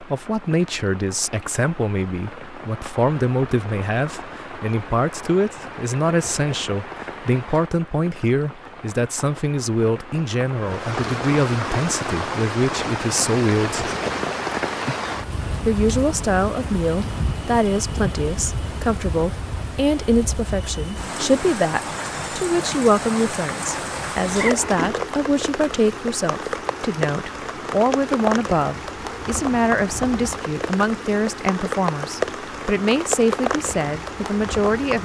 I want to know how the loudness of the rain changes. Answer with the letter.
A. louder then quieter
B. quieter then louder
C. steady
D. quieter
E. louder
E.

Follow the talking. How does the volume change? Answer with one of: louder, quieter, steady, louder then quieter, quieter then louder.
steady.